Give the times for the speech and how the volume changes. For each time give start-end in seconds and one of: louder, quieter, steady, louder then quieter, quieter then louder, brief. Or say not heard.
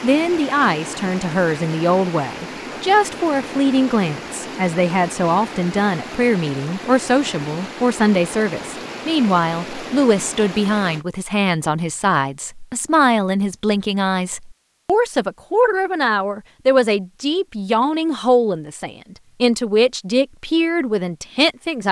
0.0-21.8 steady.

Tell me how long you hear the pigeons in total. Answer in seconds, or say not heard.
not heard.